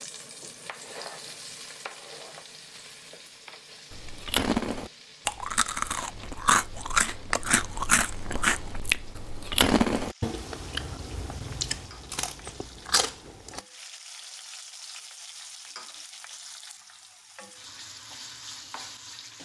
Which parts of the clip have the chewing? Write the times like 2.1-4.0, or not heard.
3.9-13.6.